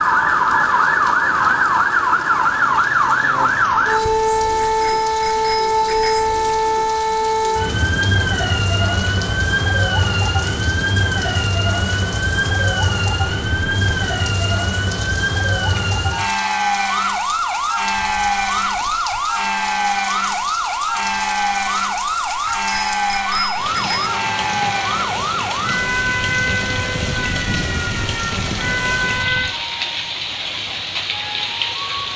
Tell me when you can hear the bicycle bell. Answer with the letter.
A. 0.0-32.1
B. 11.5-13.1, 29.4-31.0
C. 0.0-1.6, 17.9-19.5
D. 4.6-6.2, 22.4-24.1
D.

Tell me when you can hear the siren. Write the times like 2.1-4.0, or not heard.
0.0-29.5.